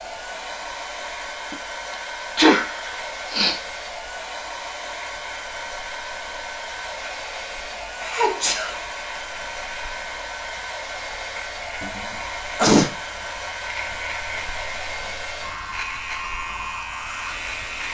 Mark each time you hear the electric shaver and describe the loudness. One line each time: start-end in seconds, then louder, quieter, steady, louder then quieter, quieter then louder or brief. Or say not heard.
0.0-17.8 louder.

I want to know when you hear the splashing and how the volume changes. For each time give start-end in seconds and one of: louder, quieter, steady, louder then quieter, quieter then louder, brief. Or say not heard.
not heard.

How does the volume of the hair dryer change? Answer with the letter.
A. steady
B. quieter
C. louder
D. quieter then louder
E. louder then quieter
A.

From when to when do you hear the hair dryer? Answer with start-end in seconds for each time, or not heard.
0.0-17.8.